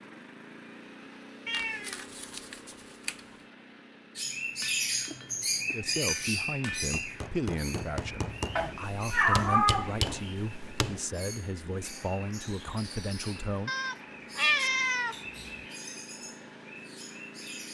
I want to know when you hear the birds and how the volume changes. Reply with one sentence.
The birds can be heard from 4.2 to 17.6 s, getting quieter.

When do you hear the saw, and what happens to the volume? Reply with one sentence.
The saw can't be heard in this clip.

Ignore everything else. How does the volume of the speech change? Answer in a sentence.
The loudness of the speech stays about the same.